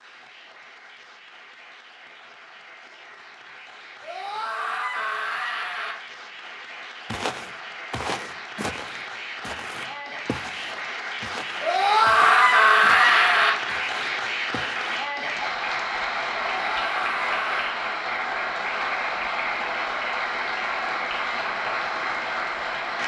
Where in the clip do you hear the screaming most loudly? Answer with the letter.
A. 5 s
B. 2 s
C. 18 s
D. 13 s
D.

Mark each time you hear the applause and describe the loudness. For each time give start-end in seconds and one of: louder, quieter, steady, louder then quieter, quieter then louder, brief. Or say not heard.
0.0-23.0 louder.